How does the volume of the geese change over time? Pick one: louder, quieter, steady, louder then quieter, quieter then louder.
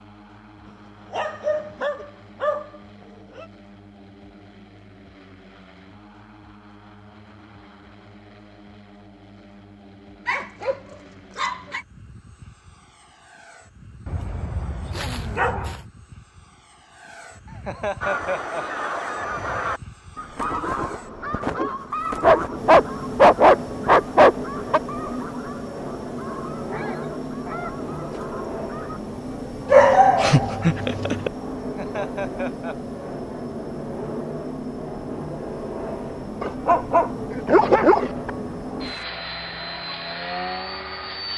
quieter.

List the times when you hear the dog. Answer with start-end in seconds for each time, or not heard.
1.1-3.5, 10.2-11.8, 14.1-15.8, 22.2-24.8, 29.6-31.3, 36.4-38.3.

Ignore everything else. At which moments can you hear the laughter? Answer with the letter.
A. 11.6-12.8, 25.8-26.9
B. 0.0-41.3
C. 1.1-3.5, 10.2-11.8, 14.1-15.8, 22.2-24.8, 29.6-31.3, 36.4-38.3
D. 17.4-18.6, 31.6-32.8
D.